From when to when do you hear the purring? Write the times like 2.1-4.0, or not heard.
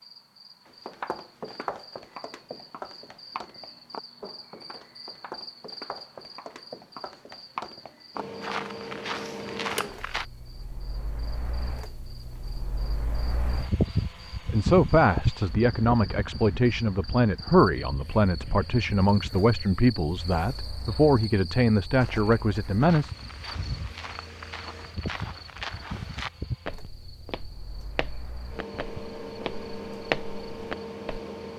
not heard.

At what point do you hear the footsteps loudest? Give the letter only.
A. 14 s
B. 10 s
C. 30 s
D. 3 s
C.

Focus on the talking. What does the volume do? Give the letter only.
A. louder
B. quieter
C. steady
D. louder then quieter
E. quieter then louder
C.